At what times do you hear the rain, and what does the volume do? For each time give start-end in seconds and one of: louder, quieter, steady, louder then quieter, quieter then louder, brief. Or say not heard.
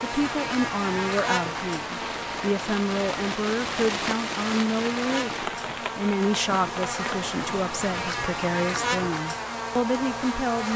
0.0-9.0 louder then quieter.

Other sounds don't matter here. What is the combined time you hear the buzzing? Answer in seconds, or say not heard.
11 s.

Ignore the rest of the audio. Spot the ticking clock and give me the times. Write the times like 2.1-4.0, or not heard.
not heard.